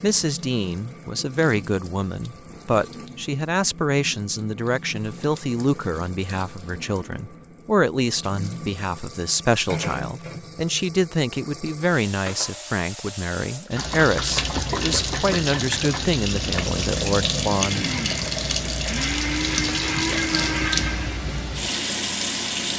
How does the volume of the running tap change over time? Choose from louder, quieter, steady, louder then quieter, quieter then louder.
louder.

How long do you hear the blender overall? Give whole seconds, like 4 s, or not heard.
4 s.